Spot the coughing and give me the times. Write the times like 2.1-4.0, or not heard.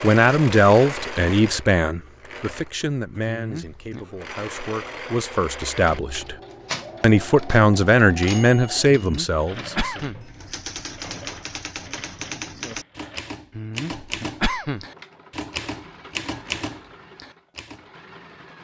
3.2-4.0, 8.9-10.4, 13.5-14.8.